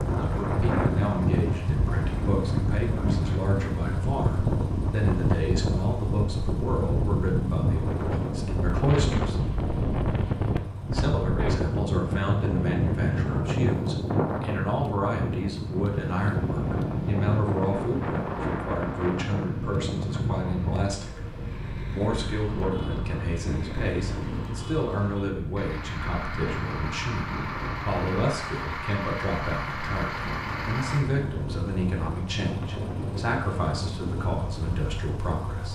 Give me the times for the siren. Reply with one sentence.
The siren can't be heard in this clip.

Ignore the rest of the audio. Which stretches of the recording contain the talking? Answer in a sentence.
You can hear the talking from 0.1 to 9.3 s, from 10.9 to 21.2 s and from 21.9 to 35.7 s.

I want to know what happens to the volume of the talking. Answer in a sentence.
The loudness of the talking stays about the same.